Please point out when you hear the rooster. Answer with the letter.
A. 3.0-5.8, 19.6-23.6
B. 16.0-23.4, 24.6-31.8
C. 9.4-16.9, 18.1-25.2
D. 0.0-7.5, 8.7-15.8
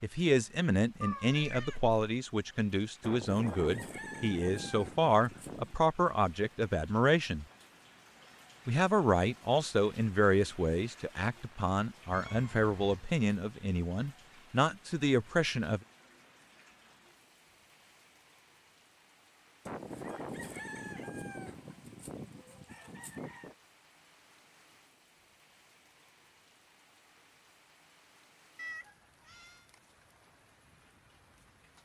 A.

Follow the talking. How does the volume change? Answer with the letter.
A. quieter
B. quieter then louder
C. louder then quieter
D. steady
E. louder
D.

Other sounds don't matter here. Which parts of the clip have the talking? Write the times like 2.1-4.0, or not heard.
0.0-7.5, 8.7-15.8.